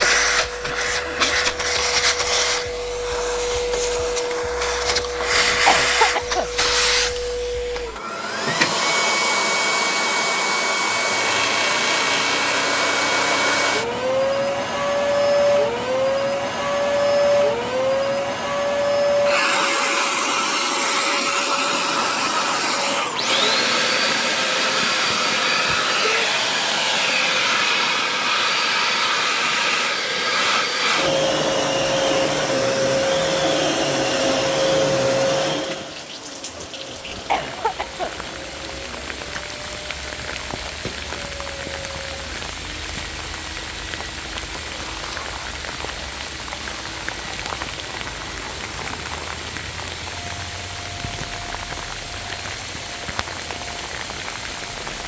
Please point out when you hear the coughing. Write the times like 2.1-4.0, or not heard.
4.9-6.5, 36.5-38.1.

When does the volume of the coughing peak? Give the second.
6 s.